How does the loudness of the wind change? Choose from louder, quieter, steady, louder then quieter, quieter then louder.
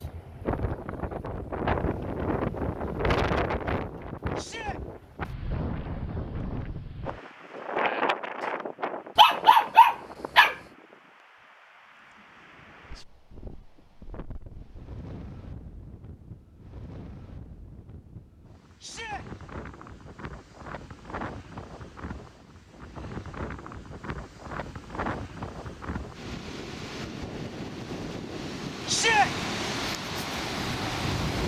quieter then louder.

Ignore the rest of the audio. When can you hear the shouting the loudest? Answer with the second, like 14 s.
29 s.